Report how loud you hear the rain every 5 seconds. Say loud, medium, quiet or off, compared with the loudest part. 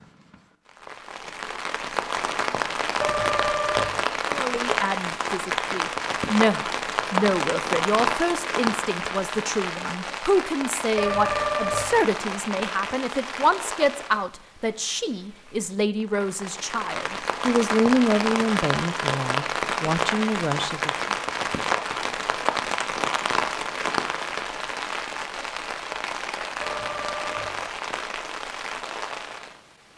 loud, loud, medium, loud, loud, medium.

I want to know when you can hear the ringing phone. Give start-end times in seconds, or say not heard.
3.0-4.0, 10.9-11.9, 26.6-27.6.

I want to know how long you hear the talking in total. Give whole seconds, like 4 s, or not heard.
17 s.